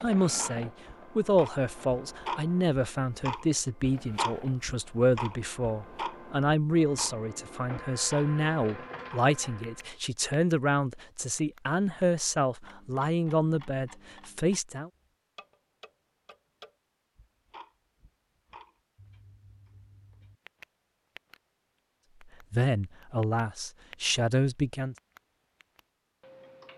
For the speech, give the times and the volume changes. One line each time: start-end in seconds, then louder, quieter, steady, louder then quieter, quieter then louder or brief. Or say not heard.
0.0-14.9 steady
22.5-24.9 brief.